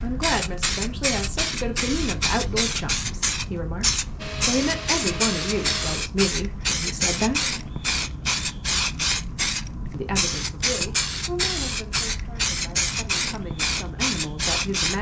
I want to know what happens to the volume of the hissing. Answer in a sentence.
The volume of the hissing stays about the same.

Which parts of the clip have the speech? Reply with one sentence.
The speech can be heard from 0.0 to 7.5 s and from 9.9 to 14.9 s.